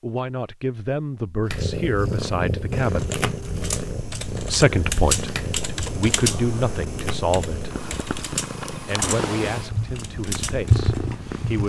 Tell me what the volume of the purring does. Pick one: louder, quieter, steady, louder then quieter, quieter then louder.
quieter then louder.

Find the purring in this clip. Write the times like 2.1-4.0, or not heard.
1.4-11.6.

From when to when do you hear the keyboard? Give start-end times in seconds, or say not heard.
2.7-11.1.